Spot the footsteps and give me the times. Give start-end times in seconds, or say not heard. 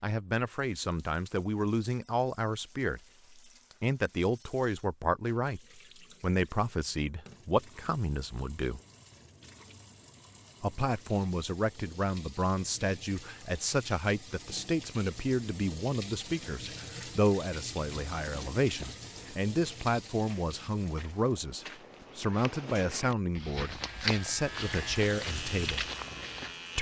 18.1-26.6.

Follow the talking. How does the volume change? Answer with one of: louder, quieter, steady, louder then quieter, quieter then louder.
steady.